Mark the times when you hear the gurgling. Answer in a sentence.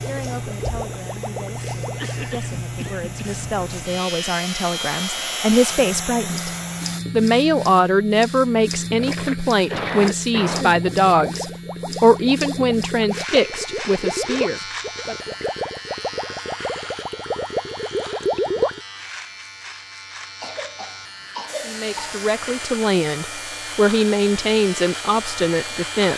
The gurgling can be heard from 0.1 to 2.4 s and from 8.9 to 18.8 s.